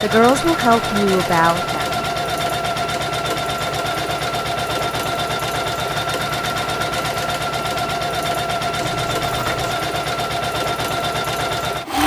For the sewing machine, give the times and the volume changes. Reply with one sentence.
You can hear the sewing machine from 0.0 to 12.0 s, at a steady volume.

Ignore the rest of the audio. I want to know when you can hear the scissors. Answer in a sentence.
The scissors can be heard from 8.8 to 9.8 s.